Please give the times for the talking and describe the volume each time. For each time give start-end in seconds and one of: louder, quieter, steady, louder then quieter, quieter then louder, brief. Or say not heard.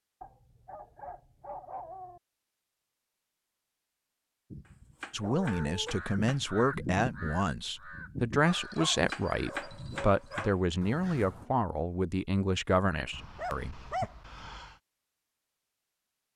5.1-14.1 steady.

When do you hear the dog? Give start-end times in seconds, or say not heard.
0.2-2.2, 5.2-6.0, 8.4-10.6, 13.1-14.8.